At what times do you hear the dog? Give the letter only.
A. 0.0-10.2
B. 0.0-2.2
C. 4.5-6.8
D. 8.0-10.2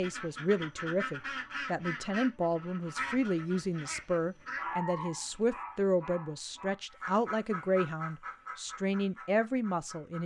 C.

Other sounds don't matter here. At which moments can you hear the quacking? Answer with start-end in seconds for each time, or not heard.
0.0-4.7, 6.9-10.2.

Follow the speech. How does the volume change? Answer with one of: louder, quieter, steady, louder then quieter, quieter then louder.
steady.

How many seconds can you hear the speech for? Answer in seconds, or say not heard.
10 s.